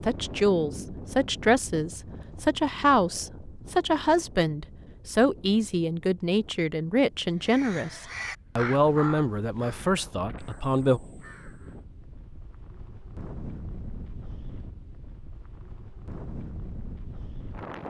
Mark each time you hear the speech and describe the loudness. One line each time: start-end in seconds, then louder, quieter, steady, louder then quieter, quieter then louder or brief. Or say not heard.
0.0-11.0 steady.